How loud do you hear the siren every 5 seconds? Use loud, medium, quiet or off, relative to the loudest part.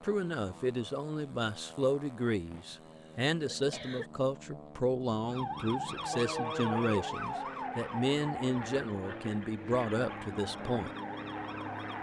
off, loud, medium.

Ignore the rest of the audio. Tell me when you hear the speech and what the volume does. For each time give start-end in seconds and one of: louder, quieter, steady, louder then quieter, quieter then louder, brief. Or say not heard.
0.0-10.9 steady.